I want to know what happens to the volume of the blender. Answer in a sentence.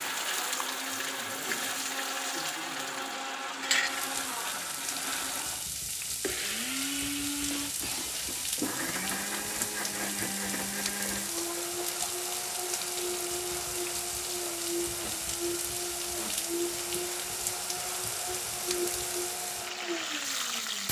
The volume of the blender stays about the same.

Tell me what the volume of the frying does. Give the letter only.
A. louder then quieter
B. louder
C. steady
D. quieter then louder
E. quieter
C.